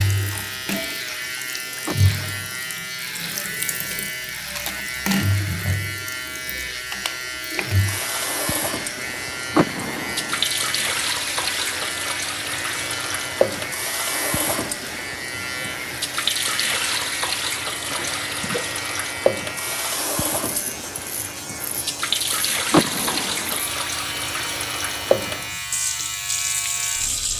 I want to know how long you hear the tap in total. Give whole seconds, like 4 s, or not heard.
27 s.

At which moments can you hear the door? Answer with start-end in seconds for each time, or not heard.
1.9-2.6, 9.6-10.4, 22.7-23.6.